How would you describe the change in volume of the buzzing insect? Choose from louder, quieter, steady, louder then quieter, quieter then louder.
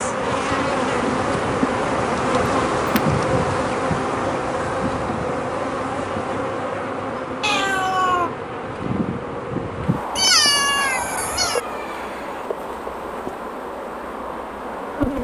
quieter.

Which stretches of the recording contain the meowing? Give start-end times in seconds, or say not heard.
7.4-8.3, 10.2-11.6.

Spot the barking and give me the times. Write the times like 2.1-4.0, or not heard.
not heard.